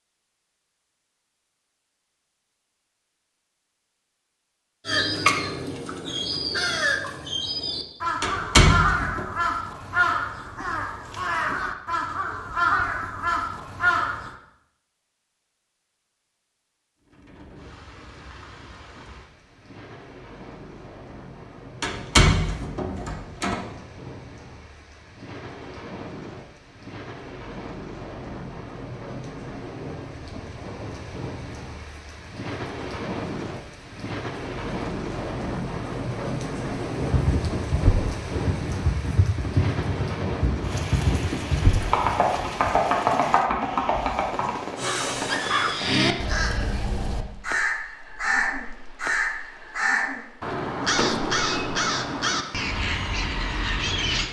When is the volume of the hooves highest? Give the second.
43 s.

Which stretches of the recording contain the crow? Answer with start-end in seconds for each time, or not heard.
4.8-14.3, 44.8-54.2.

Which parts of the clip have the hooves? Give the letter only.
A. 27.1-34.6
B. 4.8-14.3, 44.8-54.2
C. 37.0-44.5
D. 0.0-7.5
C.